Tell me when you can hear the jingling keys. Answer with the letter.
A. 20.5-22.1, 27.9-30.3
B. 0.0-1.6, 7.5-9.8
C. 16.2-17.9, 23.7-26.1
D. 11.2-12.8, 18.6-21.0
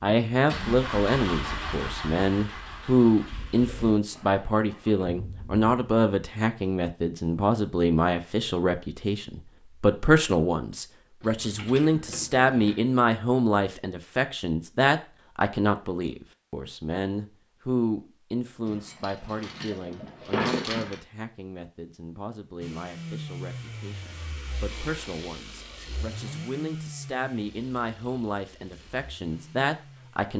D.